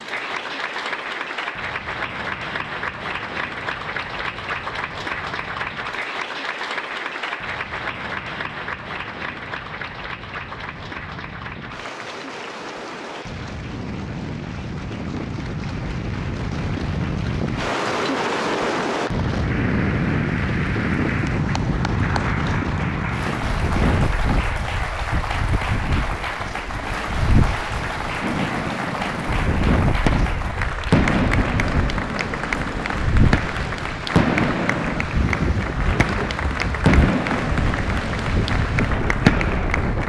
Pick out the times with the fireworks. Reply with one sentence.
You can hear the fireworks from 28.2 to 39.7 s.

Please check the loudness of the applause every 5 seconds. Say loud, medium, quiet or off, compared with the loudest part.
loud, loud, medium, medium, loud, loud, loud, loud.